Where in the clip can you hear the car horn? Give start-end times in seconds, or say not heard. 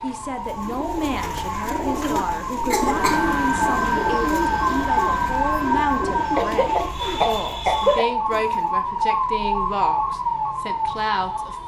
not heard.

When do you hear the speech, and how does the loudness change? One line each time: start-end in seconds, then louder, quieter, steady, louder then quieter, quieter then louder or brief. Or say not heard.
0.0-11.6 steady.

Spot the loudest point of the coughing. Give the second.
8 s.